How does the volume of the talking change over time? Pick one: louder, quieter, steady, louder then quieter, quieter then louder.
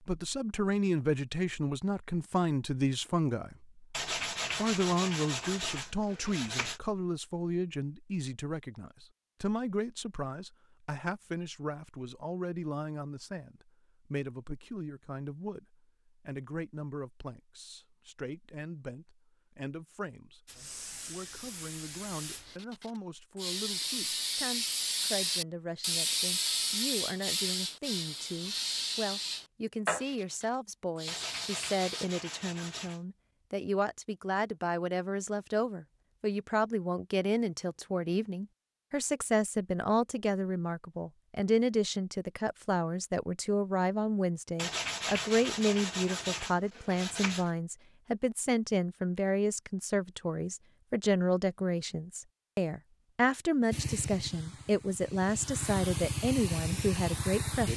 quieter then louder.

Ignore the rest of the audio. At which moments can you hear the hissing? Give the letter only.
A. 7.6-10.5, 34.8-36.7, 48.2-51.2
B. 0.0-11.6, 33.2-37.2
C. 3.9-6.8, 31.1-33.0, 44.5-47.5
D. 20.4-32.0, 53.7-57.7
D.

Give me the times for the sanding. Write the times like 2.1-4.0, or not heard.
3.9-6.8, 31.1-33.0, 44.5-47.5.